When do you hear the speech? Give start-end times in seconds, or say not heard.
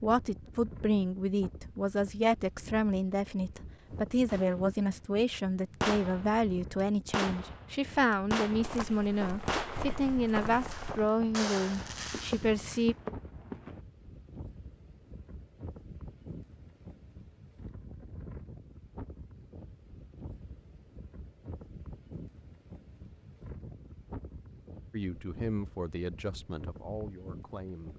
0.0-12.9, 24.9-27.9.